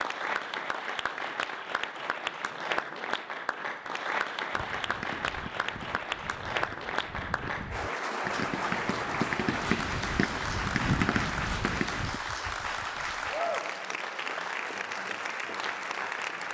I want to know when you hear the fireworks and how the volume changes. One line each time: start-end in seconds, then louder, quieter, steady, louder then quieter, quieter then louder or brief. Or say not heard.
4.5-12.2 louder.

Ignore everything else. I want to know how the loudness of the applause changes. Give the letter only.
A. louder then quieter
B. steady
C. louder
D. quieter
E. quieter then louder
B.